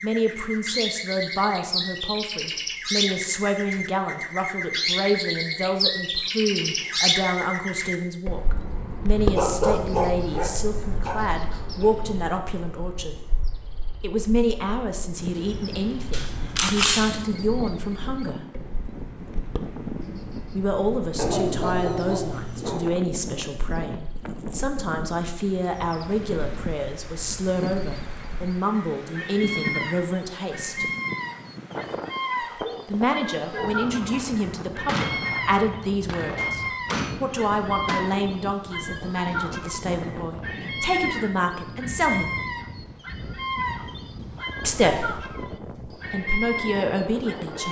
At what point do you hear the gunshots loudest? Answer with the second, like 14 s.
17 s.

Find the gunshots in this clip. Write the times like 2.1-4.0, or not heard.
16.1-17.2, 34.9-38.0.